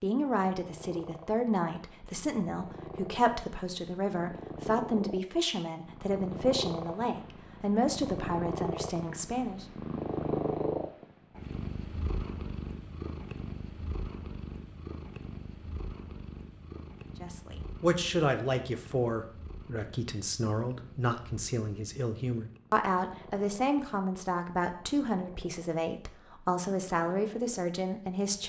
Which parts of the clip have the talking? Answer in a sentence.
You can hear the talking from 0.0 to 9.7 s and from 17.2 to 28.4 s.